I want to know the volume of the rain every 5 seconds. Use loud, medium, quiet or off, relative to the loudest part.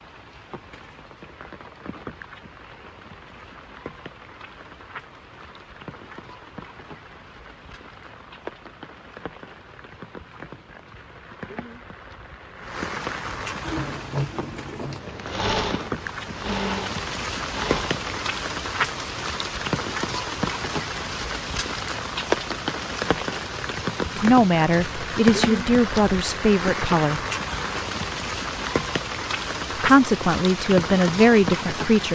quiet, quiet, medium, loud, loud, loud, loud.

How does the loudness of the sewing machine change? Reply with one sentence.
The volume of the sewing machine stays about the same.